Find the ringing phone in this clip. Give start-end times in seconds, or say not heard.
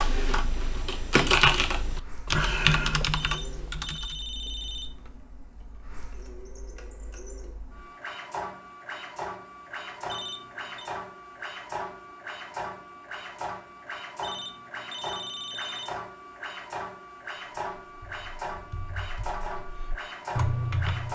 3.1-5.2, 10.1-10.9, 14.2-15.9.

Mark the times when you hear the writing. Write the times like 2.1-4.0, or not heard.
not heard.